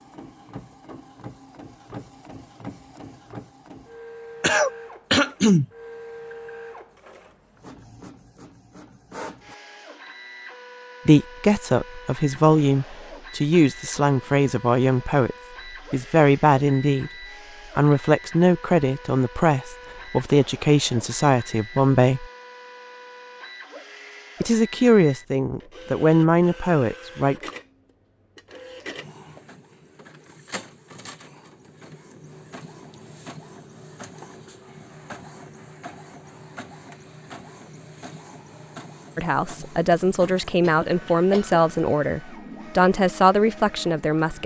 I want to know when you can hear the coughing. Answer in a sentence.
You can hear the coughing from 4.4 to 5.7 s and from 40.6 to 41.6 s.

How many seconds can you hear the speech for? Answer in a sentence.
The speech can be heard for 19 seconds in total.